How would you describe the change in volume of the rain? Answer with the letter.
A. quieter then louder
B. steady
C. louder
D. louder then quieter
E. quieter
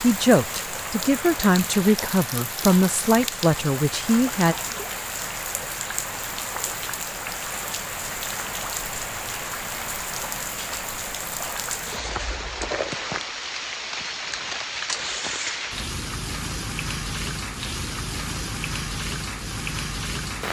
B.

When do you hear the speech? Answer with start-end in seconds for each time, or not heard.
0.0-4.5.